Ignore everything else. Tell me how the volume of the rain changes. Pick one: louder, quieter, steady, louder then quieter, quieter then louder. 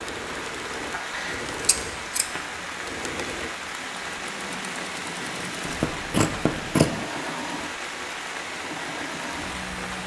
steady.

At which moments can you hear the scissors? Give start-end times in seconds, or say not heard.
1.1-2.2, 5.7-7.0.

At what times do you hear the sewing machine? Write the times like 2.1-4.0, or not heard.
0.0-10.0.